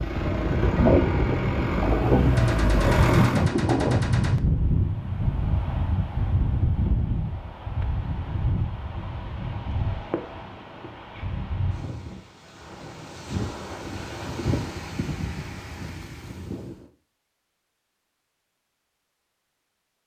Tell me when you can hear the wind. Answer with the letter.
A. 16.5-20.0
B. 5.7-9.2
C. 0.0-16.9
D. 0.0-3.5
C.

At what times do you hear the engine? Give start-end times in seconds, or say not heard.
0.0-3.5.